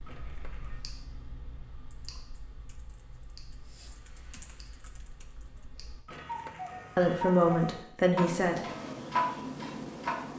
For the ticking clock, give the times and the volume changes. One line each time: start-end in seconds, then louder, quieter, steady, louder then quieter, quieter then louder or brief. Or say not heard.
0.0-10.3 quieter then louder.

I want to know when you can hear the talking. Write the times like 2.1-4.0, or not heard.
7.0-8.6.